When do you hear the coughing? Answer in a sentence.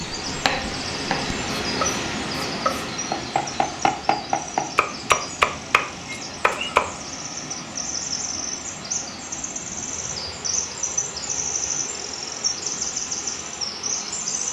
You can't hear the coughing here.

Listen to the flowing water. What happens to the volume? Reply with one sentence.
The loudness of the flowing water goes down.